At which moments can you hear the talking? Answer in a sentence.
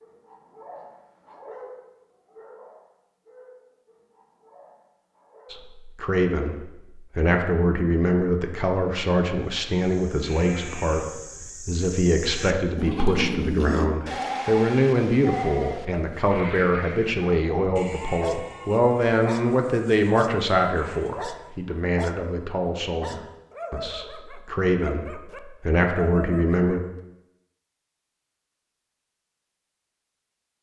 The talking can be heard from 5.5 to 26.8 s.